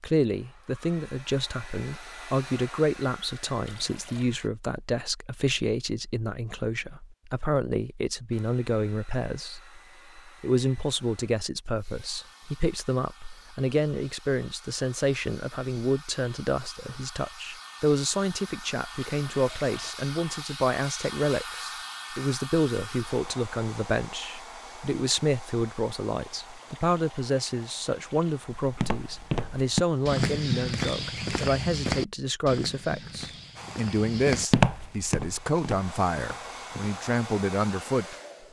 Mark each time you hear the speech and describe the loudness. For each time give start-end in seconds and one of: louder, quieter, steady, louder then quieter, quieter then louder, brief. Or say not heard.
0.0-38.1 steady.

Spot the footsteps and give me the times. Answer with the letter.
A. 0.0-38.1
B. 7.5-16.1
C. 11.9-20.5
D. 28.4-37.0
D.